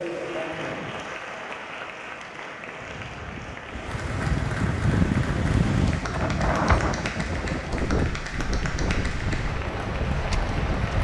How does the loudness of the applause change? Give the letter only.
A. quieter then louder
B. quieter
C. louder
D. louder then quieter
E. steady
E.